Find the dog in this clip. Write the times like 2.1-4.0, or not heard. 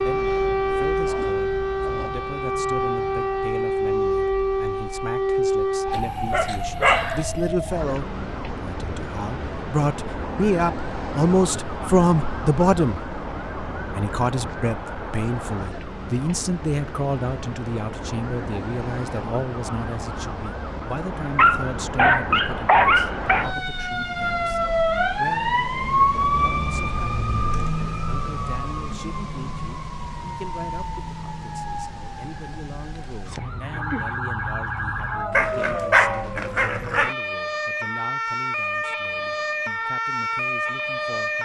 5.9-7.2, 21.4-23.4, 35.3-37.1.